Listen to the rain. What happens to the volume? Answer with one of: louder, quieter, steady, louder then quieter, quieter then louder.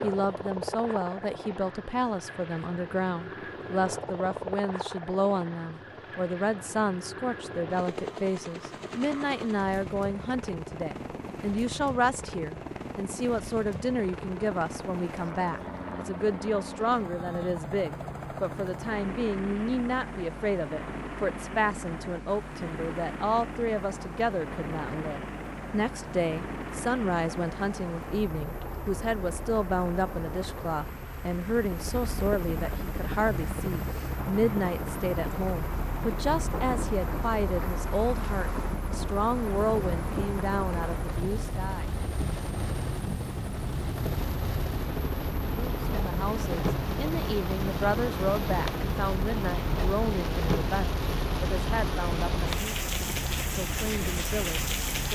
louder.